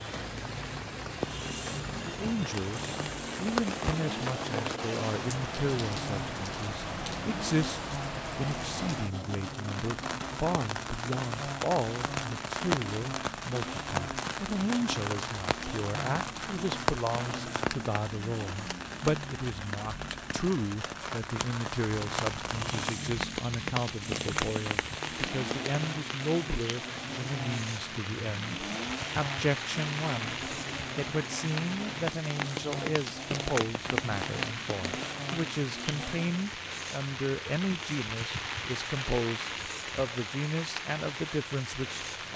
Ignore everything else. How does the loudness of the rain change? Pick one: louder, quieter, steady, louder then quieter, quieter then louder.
steady.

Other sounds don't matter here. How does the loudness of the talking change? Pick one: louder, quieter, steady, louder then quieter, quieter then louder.
steady.